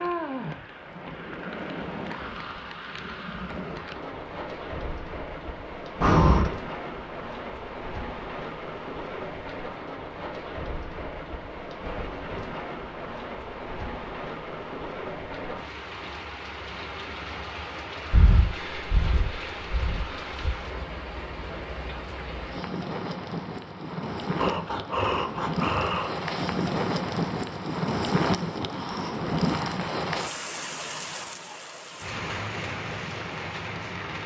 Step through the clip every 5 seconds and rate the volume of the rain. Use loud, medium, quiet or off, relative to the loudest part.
medium, medium, medium, medium, medium, loud, medium.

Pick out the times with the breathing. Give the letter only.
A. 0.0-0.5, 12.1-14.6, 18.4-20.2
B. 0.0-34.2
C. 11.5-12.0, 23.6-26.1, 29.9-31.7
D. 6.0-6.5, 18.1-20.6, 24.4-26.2
D.